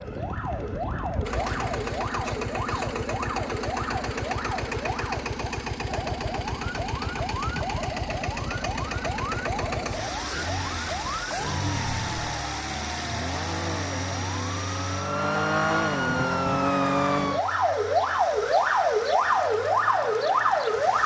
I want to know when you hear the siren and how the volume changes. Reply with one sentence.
The siren can be heard from 0.0 to 21.0 s, getting louder.